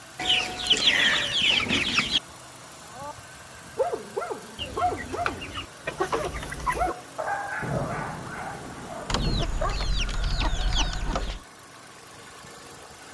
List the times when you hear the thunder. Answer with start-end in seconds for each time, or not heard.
7.6-9.4.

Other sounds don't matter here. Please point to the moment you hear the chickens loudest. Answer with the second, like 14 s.
1 s.